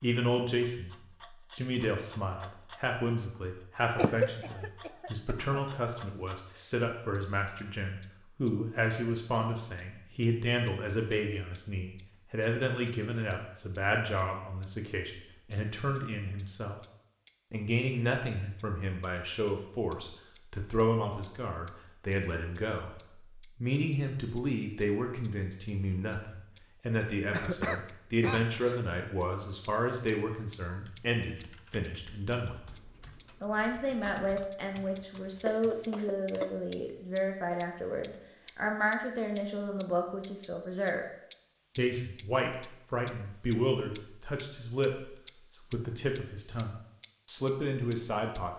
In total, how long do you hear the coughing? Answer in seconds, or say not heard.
5 s.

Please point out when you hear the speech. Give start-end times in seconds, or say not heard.
0.0-0.9, 1.6-16.8, 17.5-32.7, 33.4-41.0, 41.8-48.5.